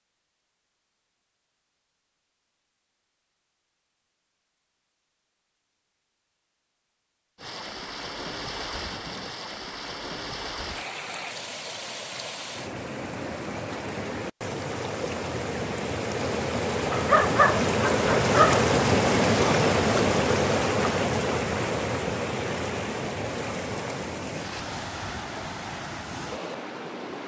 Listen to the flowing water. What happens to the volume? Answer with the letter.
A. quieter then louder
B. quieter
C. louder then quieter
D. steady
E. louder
C.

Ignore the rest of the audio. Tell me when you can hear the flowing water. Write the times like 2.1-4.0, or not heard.
7.3-27.2.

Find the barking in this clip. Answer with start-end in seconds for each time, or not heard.
16.9-18.6.